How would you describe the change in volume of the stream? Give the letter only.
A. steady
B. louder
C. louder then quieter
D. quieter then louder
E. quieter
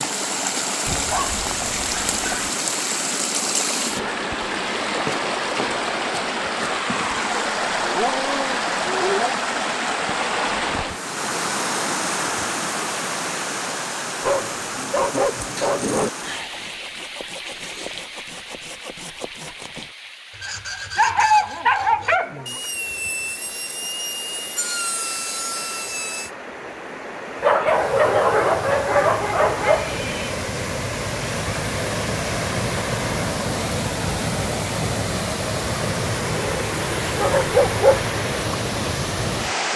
D.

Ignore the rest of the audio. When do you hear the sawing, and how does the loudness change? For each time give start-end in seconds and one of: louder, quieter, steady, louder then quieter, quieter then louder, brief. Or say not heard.
16.1-26.3 louder.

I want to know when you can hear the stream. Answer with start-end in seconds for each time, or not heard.
0.0-39.7.